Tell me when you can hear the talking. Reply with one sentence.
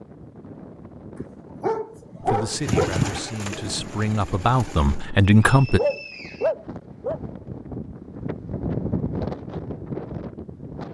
The talking can be heard from 2.2 to 5.8 s.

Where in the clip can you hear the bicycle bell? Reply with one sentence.
You can't hear the bicycle bell here.